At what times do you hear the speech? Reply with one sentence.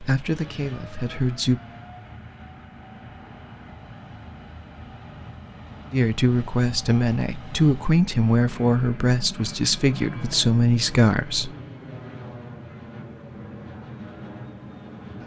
You can hear the speech from 0.0 to 1.6 s and from 5.9 to 11.5 s.